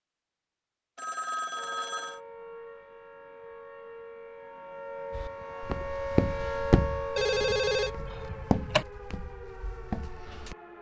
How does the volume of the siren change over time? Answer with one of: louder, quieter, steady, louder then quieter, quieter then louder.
louder then quieter.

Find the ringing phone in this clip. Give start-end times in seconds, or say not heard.
0.9-2.2, 7.2-8.8.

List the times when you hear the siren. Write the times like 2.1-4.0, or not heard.
1.5-10.7.